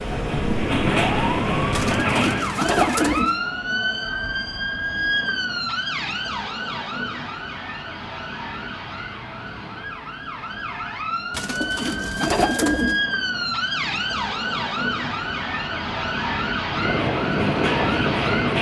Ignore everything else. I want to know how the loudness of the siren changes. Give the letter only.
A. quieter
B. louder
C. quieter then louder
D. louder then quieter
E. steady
C.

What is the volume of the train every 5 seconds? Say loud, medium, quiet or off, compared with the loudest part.
loud, off, off, loud.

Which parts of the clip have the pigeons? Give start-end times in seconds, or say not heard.
1.7-3.4, 11.3-13.0.